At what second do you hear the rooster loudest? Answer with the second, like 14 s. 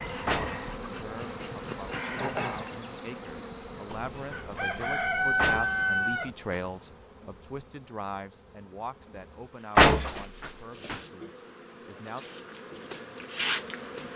5 s.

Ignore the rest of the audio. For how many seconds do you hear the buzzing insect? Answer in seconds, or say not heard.
14 s.